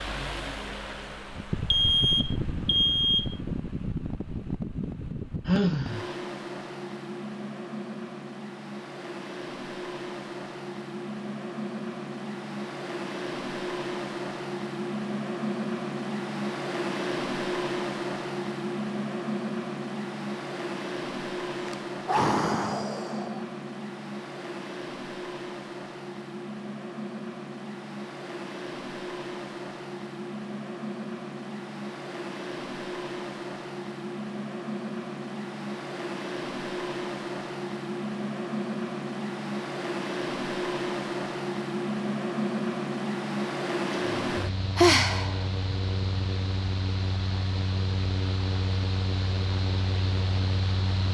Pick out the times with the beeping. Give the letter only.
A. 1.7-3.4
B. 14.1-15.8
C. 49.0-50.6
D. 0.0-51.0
A.